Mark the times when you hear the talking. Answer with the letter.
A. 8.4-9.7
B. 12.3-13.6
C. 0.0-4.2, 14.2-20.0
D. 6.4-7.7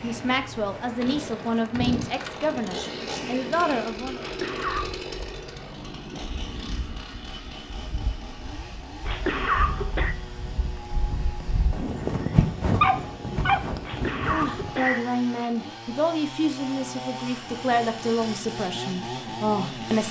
C.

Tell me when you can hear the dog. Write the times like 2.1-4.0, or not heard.
12.3-13.6.